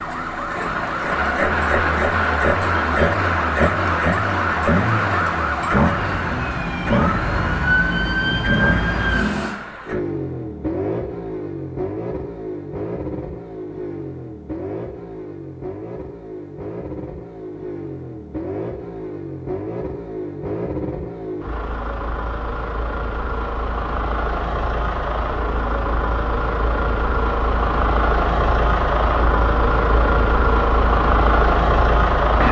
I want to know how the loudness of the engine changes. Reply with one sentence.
The volume of the engine goes down, then up.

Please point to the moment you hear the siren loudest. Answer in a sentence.
The loudest moment of the siren is at 8 seconds.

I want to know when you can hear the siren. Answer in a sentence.
You can hear the siren from 0.0 to 9.6 s.